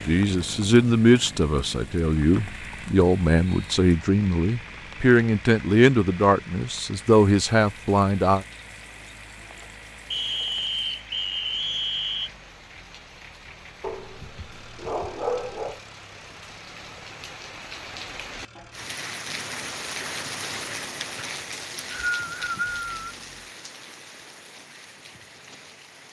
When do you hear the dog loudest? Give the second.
15 s.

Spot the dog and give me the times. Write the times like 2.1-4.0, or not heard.
13.8-15.8.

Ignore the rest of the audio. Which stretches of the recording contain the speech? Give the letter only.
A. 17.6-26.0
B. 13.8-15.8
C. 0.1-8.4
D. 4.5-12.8
C.